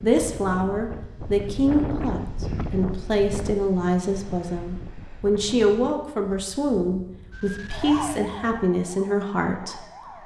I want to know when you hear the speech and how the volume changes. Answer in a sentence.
The speech can be heard from 0.0 to 9.8 s, at a steady volume.